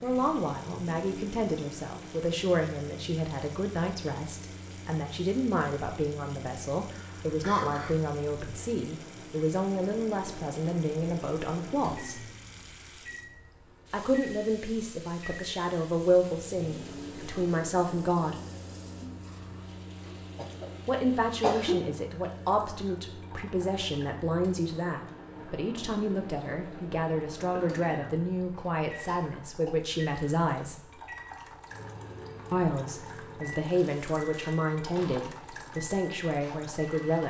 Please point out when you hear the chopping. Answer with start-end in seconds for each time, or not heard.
not heard.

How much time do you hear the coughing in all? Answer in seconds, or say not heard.
5 s.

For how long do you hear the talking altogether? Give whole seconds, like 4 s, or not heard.
31 s.